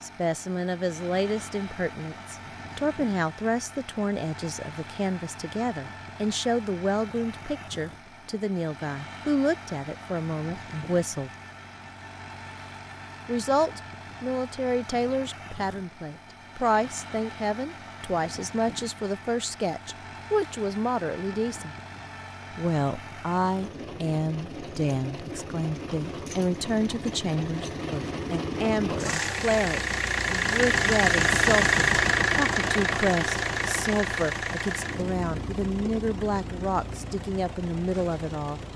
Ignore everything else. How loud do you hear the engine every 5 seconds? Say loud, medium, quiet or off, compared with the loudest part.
quiet, quiet, quiet, quiet, quiet, medium, loud, quiet.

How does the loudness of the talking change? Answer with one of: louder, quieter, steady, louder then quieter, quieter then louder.
steady.